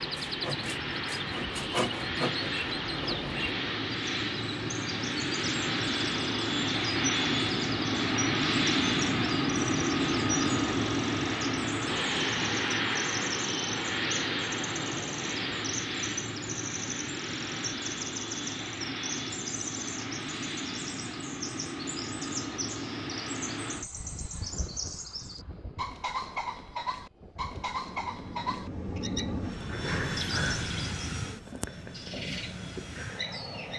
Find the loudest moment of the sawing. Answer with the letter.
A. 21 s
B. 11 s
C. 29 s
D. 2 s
D.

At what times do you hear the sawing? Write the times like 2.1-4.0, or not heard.
0.0-3.5.